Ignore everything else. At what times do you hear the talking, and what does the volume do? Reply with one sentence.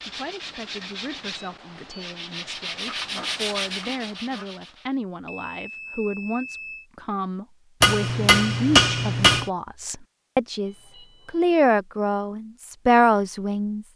The talking can be heard from 0.0 to 13.8 s, getting louder.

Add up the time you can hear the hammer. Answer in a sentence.
You can hear the hammer for 2 seconds altogether.